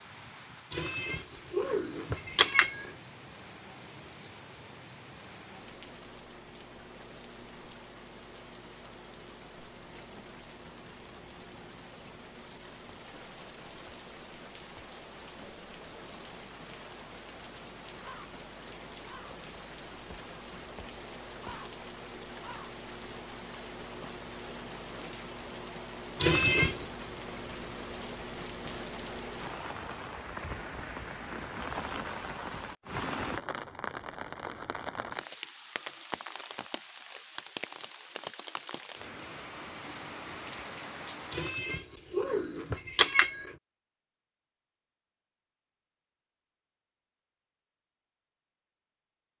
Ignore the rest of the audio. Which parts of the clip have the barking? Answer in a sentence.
You can't hear the barking here.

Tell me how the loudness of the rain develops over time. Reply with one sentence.
The loudness of the rain goes up.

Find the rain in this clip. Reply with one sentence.
You can hear the rain from 0.0 to 41.5 s.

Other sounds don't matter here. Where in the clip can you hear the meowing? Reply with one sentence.
You can hear the meowing from 0.7 to 2.9 s, from 26.1 to 26.9 s and from 41.3 to 43.5 s.